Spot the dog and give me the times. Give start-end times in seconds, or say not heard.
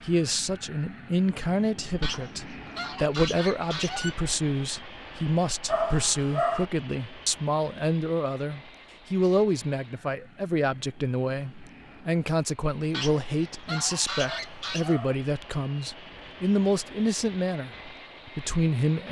5.7-6.7, 14.2-15.2.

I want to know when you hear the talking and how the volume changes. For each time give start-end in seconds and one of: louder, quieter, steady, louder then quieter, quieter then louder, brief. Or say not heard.
0.0-19.0 steady.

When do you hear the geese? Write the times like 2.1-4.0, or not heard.
2.0-4.2, 12.9-14.9.